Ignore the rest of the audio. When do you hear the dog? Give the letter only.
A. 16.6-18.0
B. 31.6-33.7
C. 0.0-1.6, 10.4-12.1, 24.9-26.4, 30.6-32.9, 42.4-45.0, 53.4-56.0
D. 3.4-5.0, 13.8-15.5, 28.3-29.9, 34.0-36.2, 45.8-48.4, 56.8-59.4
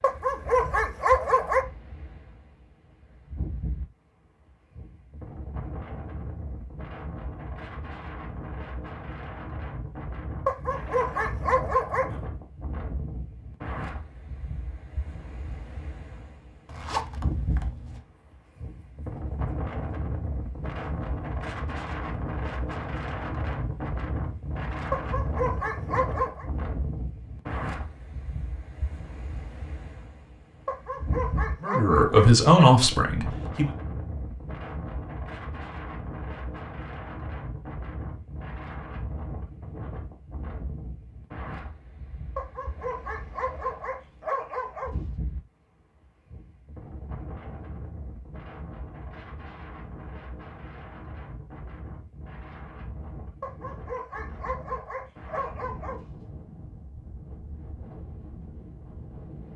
C.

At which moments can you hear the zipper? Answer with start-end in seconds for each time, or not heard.
16.6-18.0.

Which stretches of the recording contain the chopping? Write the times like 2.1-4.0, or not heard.
not heard.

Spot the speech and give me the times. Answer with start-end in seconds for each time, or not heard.
31.6-33.7.